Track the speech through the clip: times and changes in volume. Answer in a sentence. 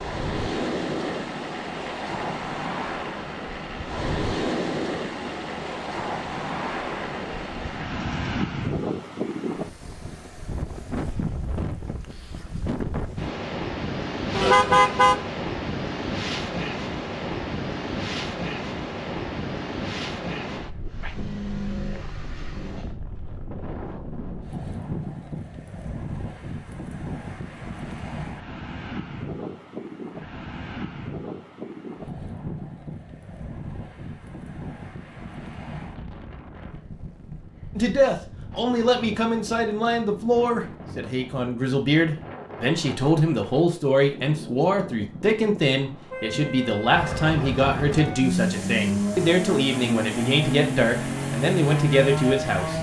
The speech can be heard from 37.8 to 52.7 s, at a steady volume.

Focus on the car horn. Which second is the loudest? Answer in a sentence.
The loudest moment of the car horn is at 15 seconds.